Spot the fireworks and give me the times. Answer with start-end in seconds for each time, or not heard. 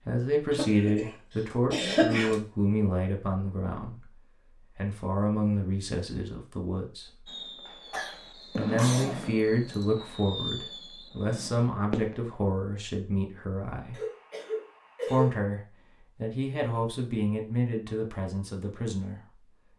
7.2-12.3.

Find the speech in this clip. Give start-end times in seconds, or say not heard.
0.1-7.3, 8.5-14.0, 15.1-15.6, 16.2-19.4.